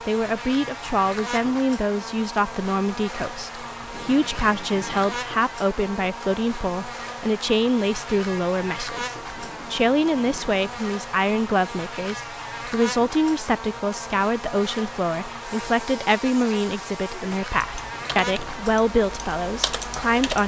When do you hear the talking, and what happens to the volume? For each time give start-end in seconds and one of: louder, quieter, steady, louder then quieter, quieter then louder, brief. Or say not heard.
0.1-20.4 steady.